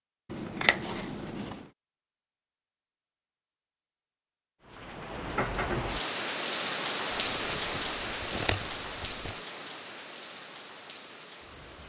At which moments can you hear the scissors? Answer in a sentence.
The scissors can be heard from 0.3 to 1.6 s and from 7.3 to 9.4 s.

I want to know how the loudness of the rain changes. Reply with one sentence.
The loudness of the rain goes down.